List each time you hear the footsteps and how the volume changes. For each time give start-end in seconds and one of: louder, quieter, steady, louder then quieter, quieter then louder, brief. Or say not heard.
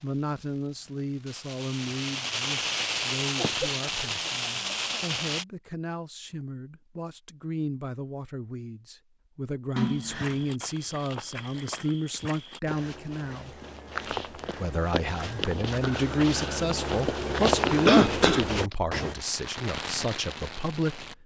9.8-19.1 louder.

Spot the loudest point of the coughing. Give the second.
18 s.